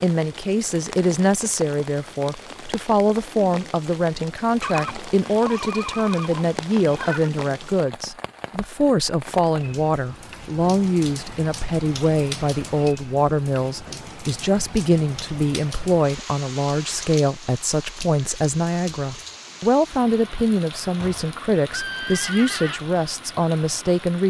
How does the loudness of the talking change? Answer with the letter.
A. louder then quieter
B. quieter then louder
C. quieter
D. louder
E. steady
E.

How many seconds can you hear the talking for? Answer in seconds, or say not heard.
24 s.